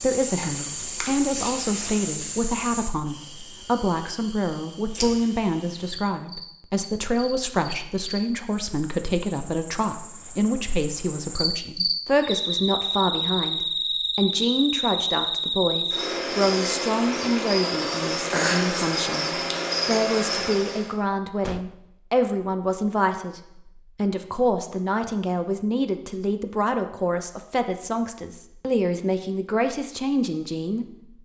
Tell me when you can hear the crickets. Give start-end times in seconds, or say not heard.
0.0-20.9.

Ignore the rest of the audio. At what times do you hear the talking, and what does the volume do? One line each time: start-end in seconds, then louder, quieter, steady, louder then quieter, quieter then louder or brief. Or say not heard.
0.0-30.9 steady.